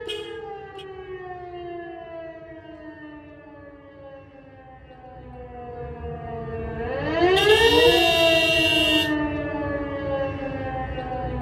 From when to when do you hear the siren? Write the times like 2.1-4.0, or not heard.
0.0-11.3.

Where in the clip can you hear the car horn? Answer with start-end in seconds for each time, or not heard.
0.1-0.8, 7.3-9.2.